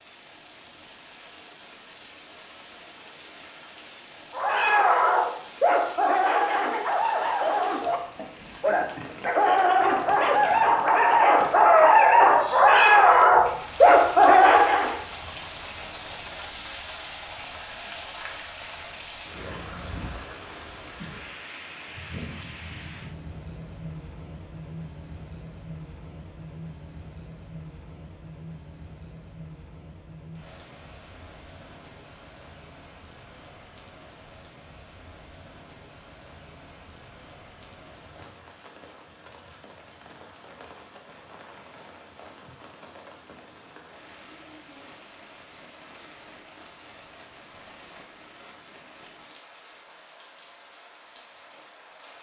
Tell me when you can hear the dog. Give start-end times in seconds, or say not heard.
4.3-15.0.